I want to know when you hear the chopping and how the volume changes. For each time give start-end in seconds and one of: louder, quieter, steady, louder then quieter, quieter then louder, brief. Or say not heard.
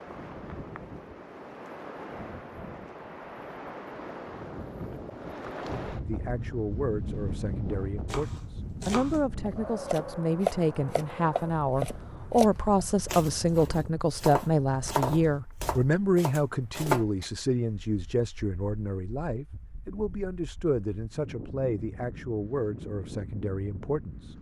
8.1-17.3 louder then quieter.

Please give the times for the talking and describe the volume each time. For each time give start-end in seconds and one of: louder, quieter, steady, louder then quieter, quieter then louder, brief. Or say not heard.
6.0-24.3 louder then quieter.